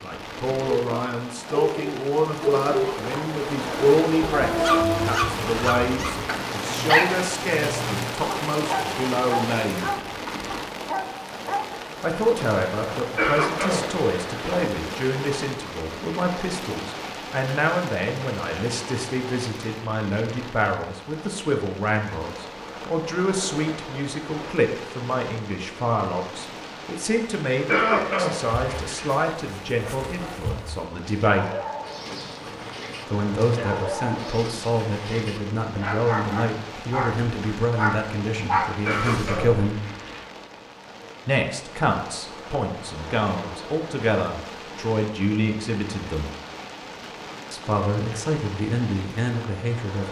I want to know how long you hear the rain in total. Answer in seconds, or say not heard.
50 s.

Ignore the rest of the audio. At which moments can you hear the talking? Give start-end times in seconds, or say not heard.
0.0-9.9, 12.0-31.4, 33.1-39.8, 41.2-46.3, 47.5-50.0.